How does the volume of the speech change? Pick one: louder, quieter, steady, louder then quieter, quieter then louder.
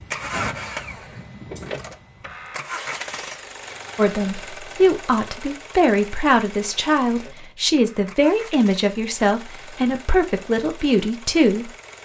steady.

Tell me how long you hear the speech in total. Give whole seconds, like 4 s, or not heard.
8 s.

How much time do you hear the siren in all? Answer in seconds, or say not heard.
not heard.